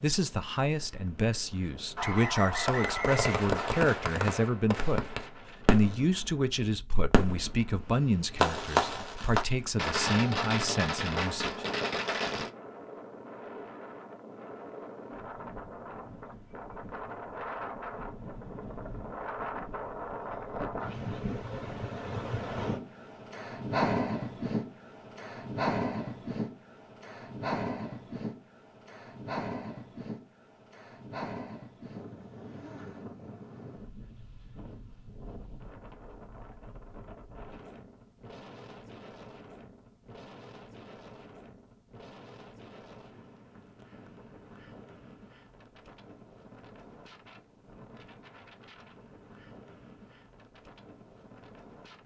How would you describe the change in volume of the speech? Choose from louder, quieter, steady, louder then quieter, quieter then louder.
steady.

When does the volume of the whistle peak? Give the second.
2 s.